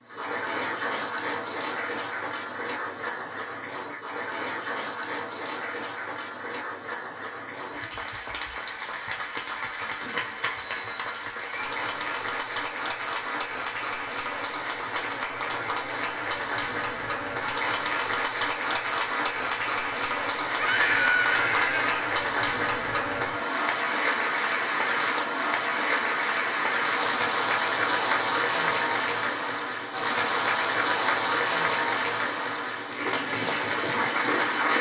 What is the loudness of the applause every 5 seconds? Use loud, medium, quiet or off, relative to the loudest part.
medium, medium, medium, loud, loud, loud, loud.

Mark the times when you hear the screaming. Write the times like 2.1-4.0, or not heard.
20.6-22.1.